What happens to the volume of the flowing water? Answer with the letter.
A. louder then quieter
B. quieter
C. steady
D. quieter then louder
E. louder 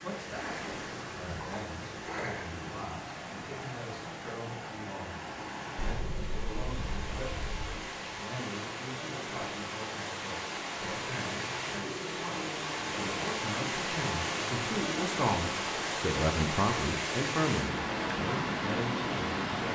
E.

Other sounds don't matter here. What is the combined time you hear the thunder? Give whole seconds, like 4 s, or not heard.
2 s.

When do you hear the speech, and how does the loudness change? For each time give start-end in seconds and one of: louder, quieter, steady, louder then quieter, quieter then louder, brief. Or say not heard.
0.0-0.6 brief
1.1-19.4 louder.